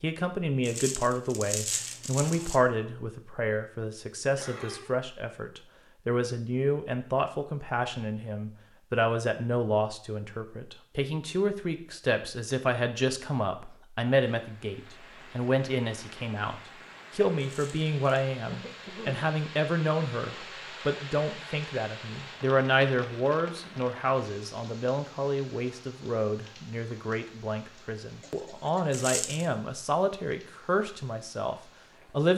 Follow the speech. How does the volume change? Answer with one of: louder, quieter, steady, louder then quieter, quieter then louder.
steady.